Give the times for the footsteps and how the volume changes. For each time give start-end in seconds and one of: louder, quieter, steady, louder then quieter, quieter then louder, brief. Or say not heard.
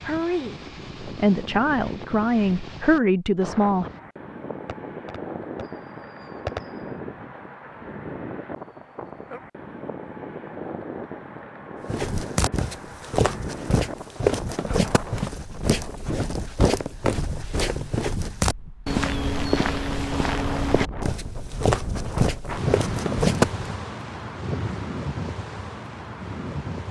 11.8-23.6 steady.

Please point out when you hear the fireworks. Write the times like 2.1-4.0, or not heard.
4.7-6.8.